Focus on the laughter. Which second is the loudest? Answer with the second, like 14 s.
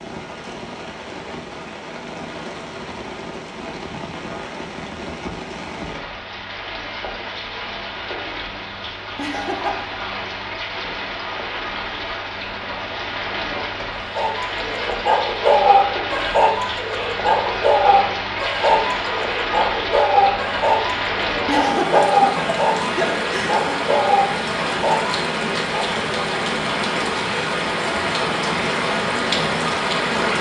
22 s.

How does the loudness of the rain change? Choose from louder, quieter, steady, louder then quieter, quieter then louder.
louder.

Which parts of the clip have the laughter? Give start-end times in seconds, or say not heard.
9.2-10.0, 21.4-23.8.